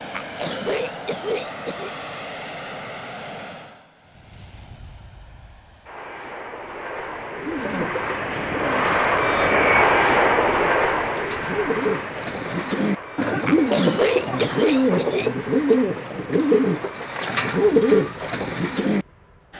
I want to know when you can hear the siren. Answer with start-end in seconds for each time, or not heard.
not heard.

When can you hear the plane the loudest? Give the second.
10 s.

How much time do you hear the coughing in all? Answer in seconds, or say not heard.
4 s.